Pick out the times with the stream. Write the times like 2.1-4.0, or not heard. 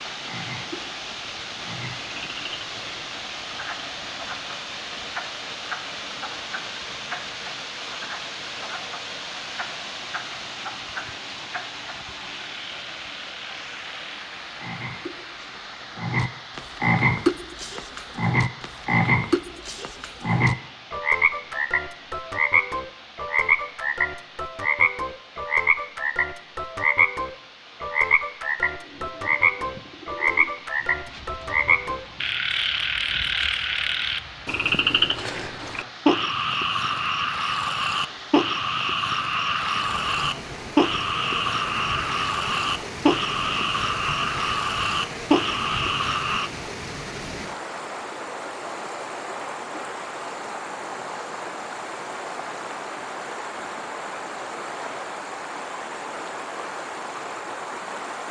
0.0-58.2.